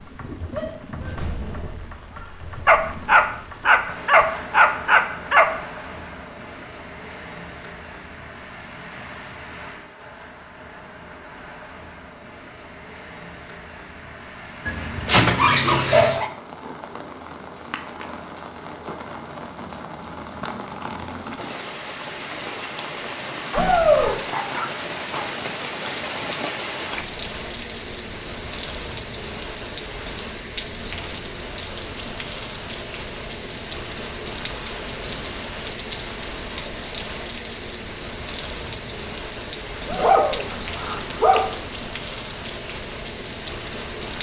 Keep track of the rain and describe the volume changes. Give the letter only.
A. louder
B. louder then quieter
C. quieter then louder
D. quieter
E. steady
A.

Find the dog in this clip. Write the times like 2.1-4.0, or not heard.
2.6-5.5, 14.7-16.3, 23.5-25.3, 40.0-41.5.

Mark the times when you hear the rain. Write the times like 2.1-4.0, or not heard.
0.0-44.1.